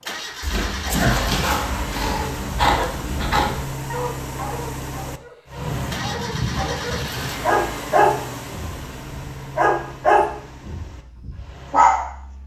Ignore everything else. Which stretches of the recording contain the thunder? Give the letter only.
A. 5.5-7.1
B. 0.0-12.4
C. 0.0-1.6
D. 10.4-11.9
A.